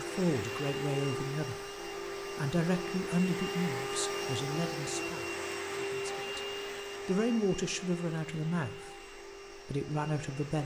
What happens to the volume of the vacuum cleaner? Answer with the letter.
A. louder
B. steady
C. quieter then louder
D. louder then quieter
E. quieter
E.